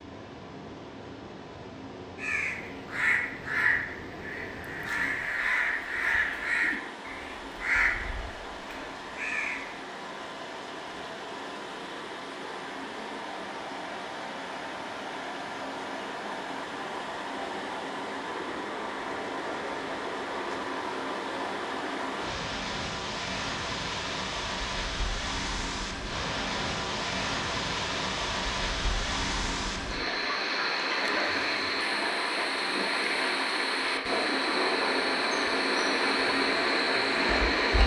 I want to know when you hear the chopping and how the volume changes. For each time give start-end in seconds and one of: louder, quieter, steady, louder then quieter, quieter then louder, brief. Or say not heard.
not heard.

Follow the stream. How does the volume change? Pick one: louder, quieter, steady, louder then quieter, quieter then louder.
louder.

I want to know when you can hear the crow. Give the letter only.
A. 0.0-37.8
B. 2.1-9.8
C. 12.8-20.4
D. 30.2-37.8
B.